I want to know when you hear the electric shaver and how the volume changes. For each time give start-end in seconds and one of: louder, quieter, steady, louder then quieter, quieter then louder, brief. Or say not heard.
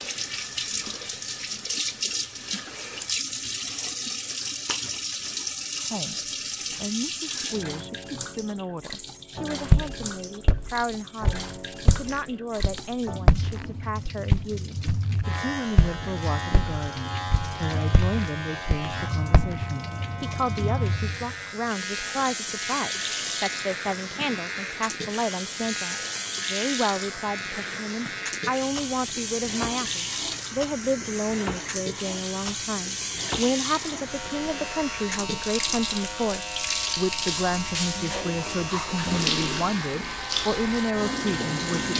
15.2-41.9 steady.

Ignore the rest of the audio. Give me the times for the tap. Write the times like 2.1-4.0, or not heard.
0.0-41.9.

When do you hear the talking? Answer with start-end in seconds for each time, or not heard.
5.9-41.9.